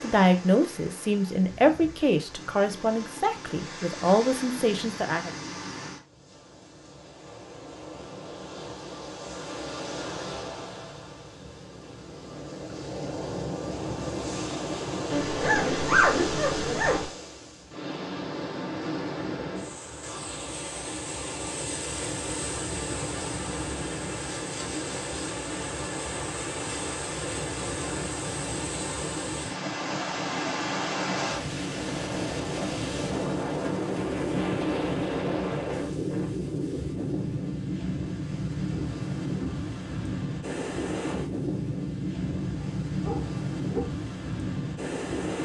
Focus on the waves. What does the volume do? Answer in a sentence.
The volume of the waves goes up.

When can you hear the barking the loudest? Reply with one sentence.
The volume of the barking peaks at 16 seconds.